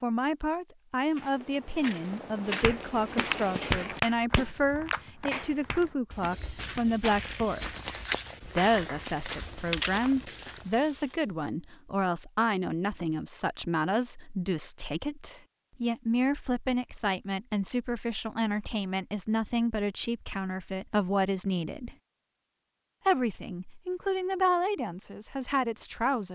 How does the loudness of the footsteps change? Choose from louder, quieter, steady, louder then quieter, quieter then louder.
quieter then louder.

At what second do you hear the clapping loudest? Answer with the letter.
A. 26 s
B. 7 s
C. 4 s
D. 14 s
C.